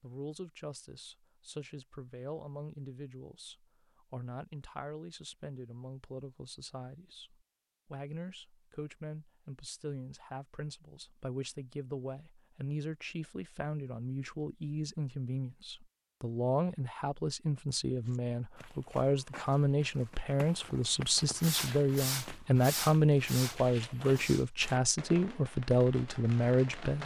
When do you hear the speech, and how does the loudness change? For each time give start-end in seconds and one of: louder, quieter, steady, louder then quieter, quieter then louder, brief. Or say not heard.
0.0-27.0 louder.